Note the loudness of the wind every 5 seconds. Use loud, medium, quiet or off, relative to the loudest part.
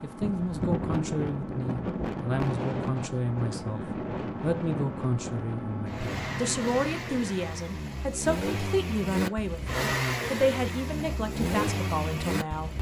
loud, medium, off.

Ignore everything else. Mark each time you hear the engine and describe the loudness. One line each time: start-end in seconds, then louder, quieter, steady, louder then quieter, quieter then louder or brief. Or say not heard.
0.0-12.7 louder.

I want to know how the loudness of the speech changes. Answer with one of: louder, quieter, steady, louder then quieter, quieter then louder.
steady.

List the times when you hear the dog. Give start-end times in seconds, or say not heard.
not heard.